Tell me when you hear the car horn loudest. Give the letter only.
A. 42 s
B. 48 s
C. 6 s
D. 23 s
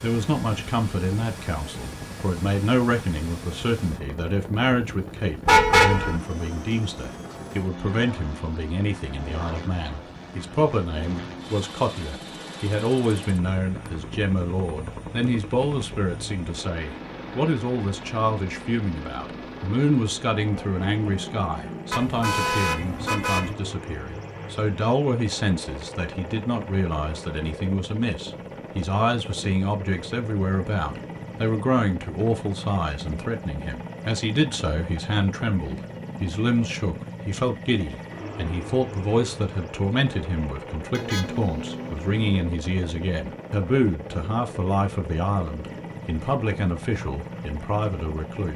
C.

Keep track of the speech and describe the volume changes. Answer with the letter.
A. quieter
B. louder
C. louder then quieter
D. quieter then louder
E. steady
E.